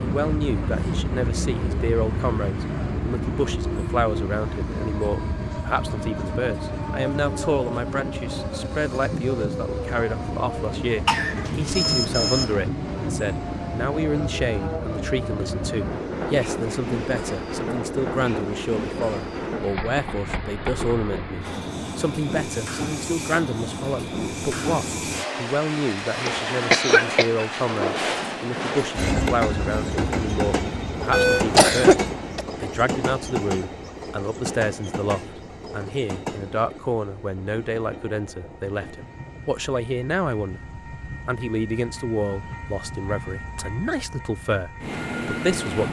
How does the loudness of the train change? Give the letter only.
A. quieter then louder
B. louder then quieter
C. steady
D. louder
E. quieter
E.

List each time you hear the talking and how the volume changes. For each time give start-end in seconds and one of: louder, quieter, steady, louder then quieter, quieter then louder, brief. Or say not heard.
0.0-45.8 steady.